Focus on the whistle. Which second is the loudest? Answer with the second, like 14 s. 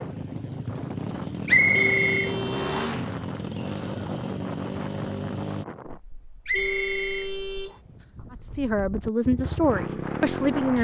2 s.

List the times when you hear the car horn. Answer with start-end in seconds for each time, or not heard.
1.7-3.0, 6.5-7.8.